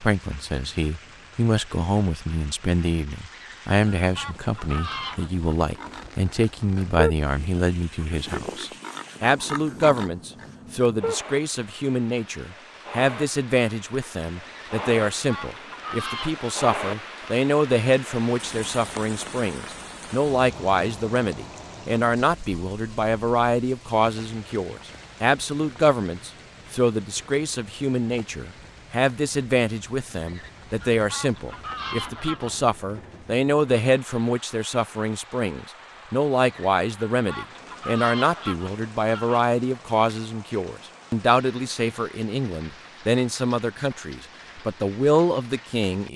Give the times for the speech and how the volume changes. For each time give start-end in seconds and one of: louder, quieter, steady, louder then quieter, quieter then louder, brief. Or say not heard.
0.0-46.1 steady.